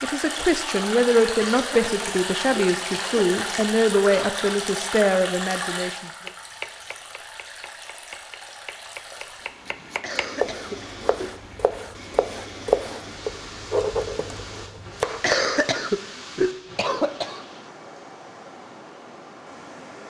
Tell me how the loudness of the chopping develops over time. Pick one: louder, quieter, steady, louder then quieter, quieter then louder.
louder.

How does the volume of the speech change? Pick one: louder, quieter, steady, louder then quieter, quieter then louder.
steady.